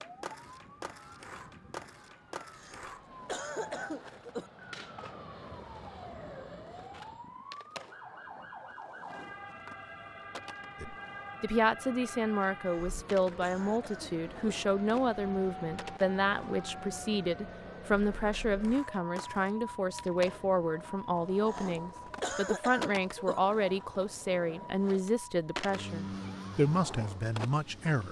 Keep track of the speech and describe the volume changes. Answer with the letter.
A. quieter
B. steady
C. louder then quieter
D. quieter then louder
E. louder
B.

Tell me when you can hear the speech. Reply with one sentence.
You can hear the speech from 10.8 to 28.0 s.